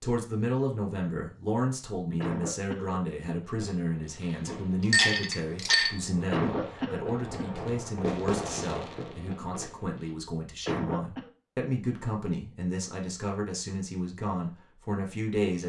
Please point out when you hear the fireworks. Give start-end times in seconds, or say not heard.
3.5-10.2.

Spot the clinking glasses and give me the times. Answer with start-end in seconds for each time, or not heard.
4.9-6.0.